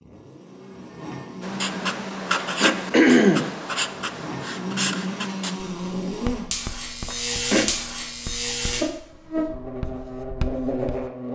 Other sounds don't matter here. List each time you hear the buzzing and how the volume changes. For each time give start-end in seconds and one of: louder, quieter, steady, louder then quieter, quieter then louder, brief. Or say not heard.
0.0-11.3 louder.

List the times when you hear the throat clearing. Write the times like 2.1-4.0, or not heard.
2.6-3.5, 7.0-7.7.